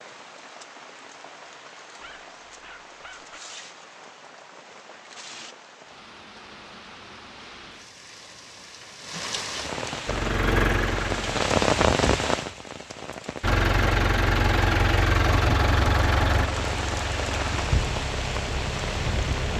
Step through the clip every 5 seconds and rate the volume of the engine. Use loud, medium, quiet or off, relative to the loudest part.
off, off, loud, loud.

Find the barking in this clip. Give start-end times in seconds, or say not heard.
2.0-3.4.